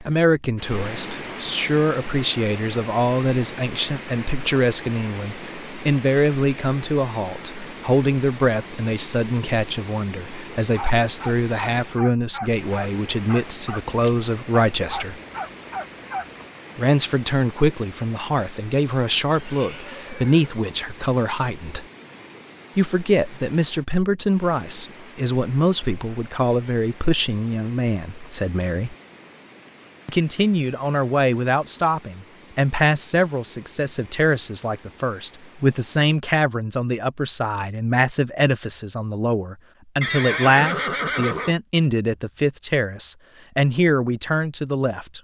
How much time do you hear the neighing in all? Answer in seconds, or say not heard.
3 s.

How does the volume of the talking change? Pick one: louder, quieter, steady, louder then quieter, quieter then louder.
steady.